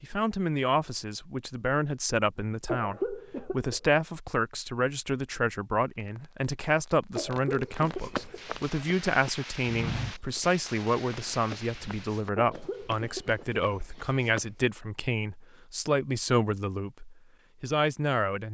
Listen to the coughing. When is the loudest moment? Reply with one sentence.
The loudest moment of the coughing is at 3 seconds.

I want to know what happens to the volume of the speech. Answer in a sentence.
The volume of the speech stays about the same.